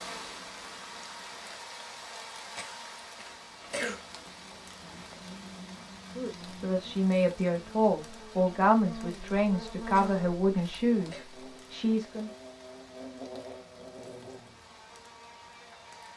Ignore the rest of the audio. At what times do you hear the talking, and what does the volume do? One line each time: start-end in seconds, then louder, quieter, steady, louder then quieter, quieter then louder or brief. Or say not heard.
6.2-12.3 steady.